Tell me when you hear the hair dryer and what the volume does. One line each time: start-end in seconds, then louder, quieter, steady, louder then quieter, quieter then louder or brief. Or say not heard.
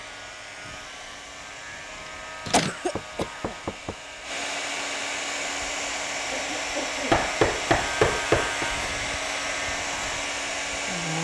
0.0-11.1 louder.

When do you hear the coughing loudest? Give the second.
3 s.